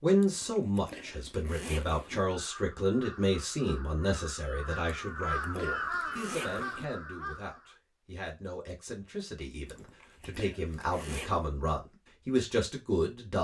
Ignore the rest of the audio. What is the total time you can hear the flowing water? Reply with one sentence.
You can't hear the flowing water here.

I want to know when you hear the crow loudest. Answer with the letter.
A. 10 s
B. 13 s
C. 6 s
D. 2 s
C.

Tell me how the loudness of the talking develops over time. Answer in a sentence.
The volume of the talking goes down, then up.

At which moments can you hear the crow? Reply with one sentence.
The crow can be heard from 2.2 to 7.8 s.